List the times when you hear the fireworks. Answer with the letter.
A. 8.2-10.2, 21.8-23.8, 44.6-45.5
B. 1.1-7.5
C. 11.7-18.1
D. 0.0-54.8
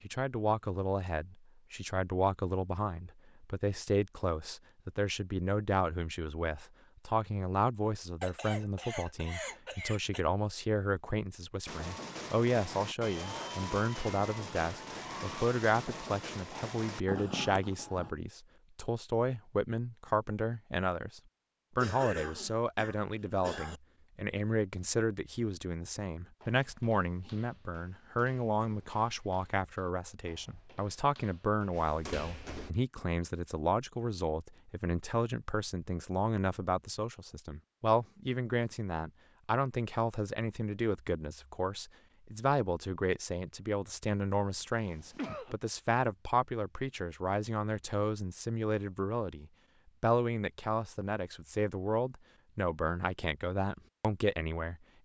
C.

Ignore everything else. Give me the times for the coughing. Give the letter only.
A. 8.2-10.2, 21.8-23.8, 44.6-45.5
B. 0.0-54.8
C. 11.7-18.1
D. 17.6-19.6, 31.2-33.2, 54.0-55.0
A.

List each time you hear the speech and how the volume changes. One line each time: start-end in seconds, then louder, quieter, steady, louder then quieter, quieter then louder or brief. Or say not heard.
0.0-54.8 steady.